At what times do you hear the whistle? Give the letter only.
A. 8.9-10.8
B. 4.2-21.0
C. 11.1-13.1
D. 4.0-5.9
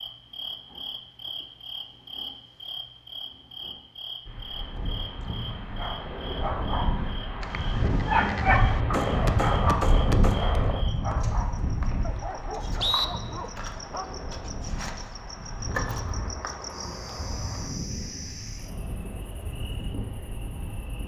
C.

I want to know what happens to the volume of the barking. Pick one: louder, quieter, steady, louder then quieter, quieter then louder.
louder then quieter.